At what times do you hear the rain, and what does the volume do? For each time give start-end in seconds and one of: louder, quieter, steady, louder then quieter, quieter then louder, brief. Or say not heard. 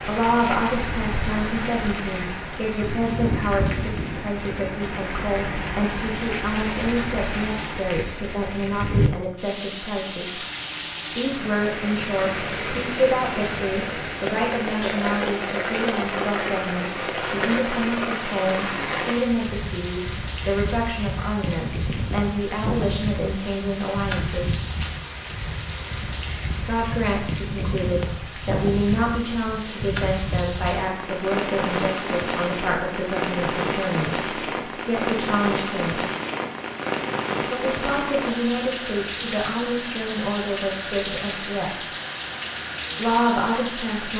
0.0-44.1 steady.